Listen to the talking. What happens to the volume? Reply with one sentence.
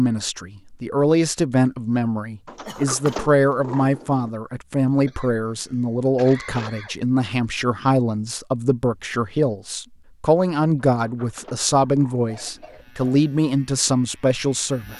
The loudness of the talking stays about the same.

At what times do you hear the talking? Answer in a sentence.
You can hear the talking from 0.0 to 14.9 s.